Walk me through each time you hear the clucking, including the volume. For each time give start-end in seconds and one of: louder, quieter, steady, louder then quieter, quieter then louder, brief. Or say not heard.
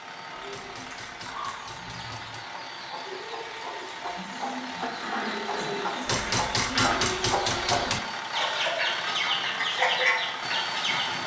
0.2-11.2 louder.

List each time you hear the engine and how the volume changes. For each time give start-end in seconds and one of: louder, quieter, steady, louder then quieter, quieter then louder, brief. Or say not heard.
0.0-11.2 louder.